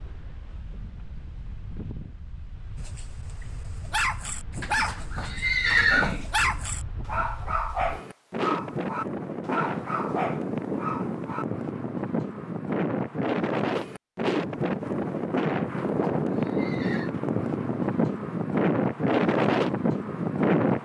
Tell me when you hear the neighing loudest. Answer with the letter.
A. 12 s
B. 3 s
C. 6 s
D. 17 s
C.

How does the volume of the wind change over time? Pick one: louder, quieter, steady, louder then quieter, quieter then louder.
louder.